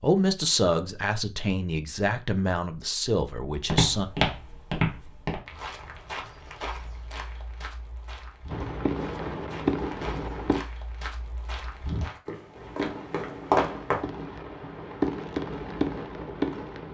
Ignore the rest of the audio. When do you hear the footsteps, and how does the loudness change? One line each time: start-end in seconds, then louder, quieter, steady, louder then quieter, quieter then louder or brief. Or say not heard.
3.6-14.1 quieter then louder.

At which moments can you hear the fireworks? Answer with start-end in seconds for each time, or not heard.
8.5-10.6, 12.6-16.8.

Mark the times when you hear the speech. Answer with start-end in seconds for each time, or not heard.
0.0-4.0.